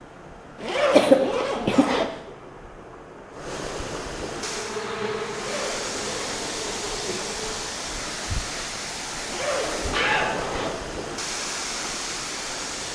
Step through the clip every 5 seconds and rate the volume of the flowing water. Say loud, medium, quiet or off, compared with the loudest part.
medium, loud, loud.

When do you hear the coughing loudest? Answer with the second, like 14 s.
1 s.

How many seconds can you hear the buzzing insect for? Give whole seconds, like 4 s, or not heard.
3 s.